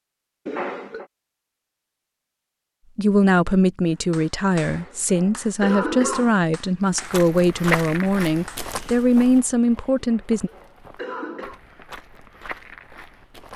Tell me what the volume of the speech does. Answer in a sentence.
The volume of the speech stays about the same.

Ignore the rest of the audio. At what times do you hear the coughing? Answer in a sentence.
The coughing can be heard from 0.5 to 1.1 s, from 4.6 to 6.4 s and from 10.0 to 11.6 s.